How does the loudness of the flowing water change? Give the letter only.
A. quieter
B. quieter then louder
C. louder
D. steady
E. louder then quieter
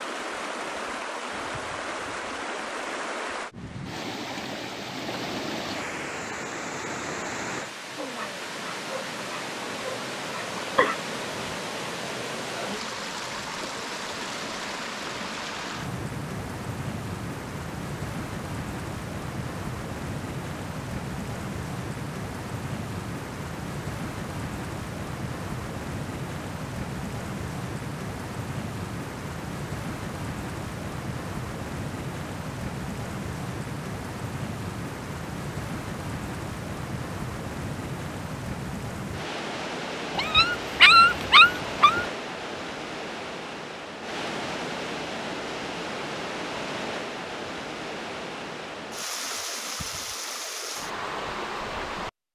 D.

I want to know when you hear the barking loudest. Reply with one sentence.
The loudest moment of the barking is at 41 seconds.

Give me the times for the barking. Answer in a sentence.
The barking can be heard from 8.0 to 10.9 s and from 40.1 to 42.0 s.